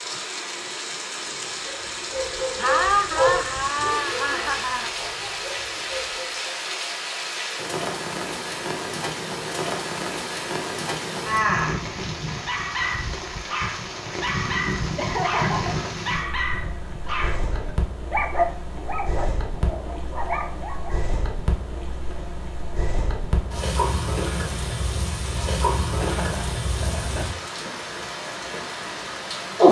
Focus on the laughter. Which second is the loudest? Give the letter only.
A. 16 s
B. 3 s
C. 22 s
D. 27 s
B.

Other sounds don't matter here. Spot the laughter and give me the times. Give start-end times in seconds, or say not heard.
2.5-4.9, 14.9-15.8, 26.0-27.3.